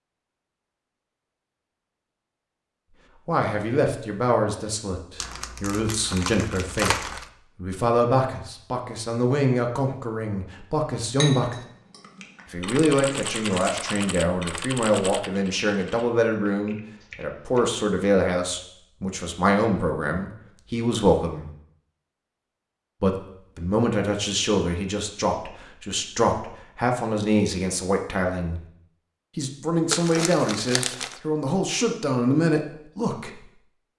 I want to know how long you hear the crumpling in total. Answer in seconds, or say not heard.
4 s.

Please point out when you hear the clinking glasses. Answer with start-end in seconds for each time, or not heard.
11.2-12.4.